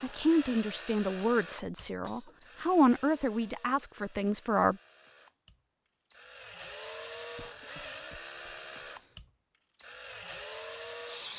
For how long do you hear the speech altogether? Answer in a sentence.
The speech can be heard for 5 seconds in total.